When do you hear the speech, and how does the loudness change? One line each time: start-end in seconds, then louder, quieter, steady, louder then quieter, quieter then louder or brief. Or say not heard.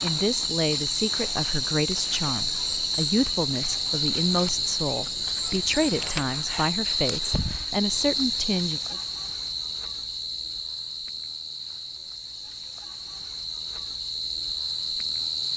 0.0-8.9 steady.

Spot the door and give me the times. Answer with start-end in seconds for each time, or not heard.
not heard.